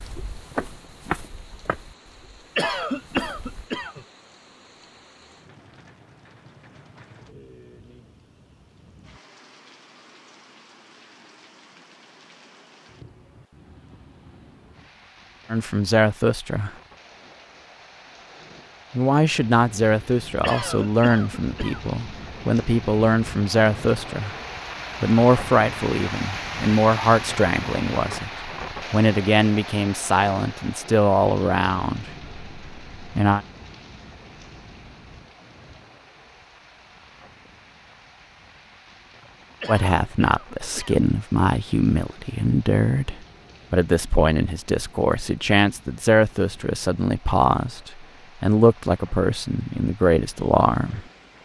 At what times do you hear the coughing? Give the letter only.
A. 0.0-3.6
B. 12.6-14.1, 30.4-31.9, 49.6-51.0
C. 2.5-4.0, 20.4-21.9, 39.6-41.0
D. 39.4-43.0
C.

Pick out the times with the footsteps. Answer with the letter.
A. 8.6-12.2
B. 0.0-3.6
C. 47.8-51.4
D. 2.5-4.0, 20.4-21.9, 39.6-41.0
B.